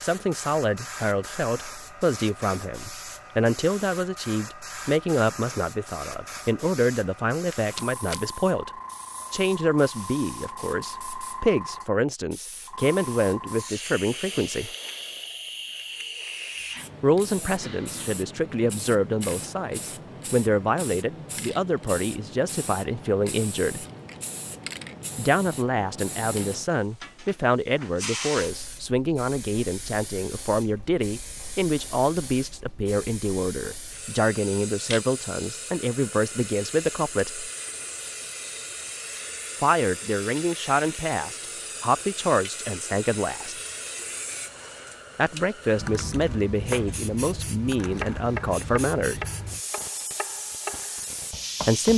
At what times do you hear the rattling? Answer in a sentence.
You can hear the rattling from 7.3 to 8.2 s.